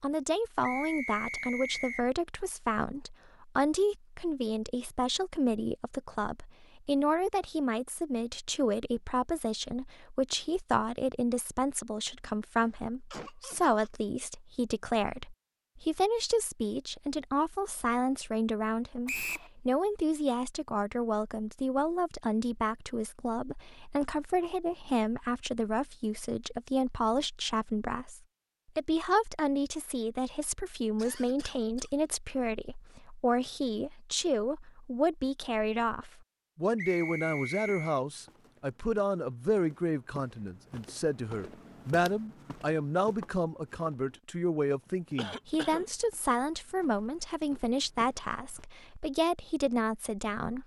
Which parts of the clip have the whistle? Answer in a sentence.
The whistle can be heard from 0.6 to 2.0 s, from 19.1 to 19.5 s and from 36.8 to 38.0 s.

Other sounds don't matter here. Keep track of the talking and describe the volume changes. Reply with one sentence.
The loudness of the talking stays about the same.